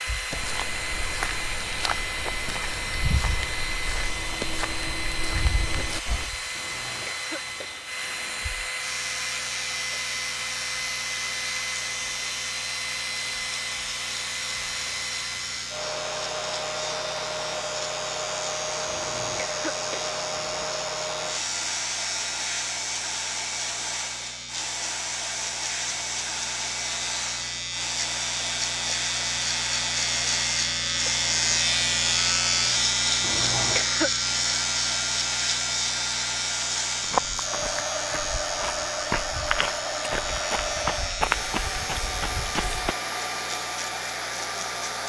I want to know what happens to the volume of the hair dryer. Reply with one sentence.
The volume of the hair dryer stays about the same.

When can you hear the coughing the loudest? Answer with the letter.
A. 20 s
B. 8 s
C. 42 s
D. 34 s
D.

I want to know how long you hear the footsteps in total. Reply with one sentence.
You can hear the footsteps for 12 seconds altogether.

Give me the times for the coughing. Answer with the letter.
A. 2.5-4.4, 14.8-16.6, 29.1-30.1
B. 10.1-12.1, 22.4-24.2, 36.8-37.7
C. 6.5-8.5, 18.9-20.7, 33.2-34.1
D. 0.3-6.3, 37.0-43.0
C.